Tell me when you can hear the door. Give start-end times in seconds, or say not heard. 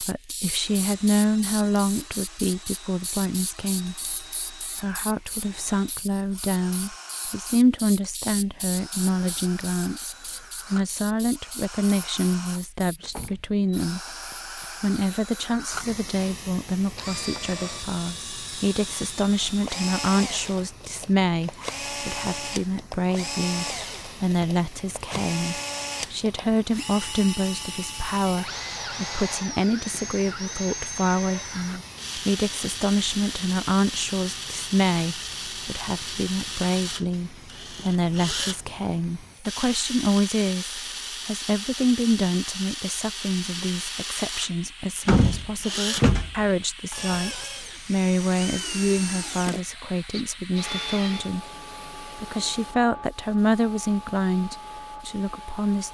13.1-14.7, 24.4-25.4, 45.0-46.4.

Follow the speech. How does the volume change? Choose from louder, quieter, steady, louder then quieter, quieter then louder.
steady.